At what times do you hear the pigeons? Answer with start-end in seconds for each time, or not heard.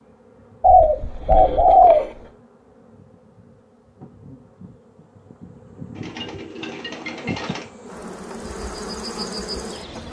0.6-2.1, 6.0-7.7.